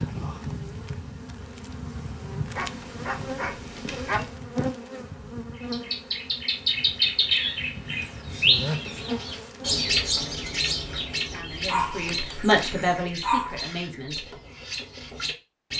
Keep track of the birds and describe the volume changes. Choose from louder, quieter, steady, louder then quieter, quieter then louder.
quieter.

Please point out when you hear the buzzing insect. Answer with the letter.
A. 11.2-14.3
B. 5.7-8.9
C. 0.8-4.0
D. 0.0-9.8
D.